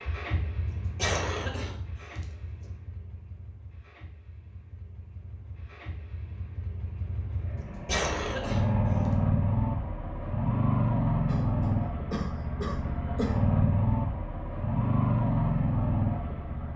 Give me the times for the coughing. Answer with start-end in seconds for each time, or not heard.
0.9-1.8, 7.8-8.7, 11.2-13.3.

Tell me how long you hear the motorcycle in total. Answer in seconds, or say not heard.
17 s.